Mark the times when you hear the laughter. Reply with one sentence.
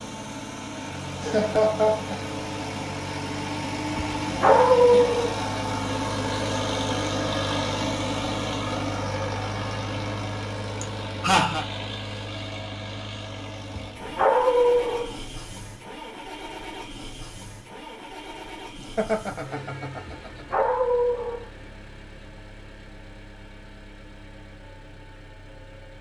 You can hear the laughter from 1.2 to 2.2 s, from 10.8 to 11.7 s and from 18.8 to 20.4 s.